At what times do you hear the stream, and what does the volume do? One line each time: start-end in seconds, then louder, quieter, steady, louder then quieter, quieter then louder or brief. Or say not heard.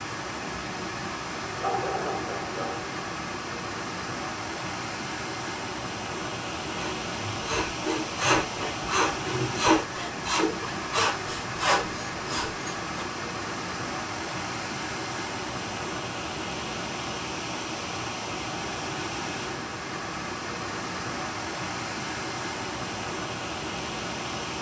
0.0-24.5 steady.